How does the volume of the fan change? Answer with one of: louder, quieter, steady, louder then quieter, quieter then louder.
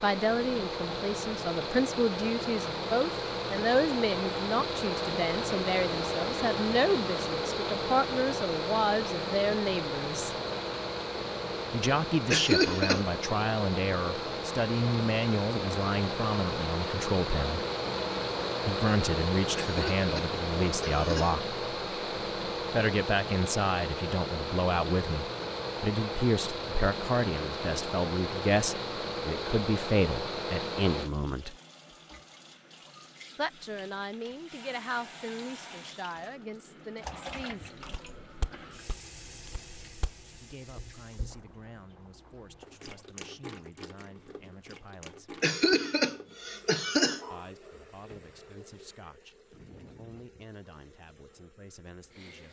steady.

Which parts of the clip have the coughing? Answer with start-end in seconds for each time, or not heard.
12.3-13.1, 19.6-21.4, 45.4-47.4.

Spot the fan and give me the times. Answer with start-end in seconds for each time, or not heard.
0.0-31.1.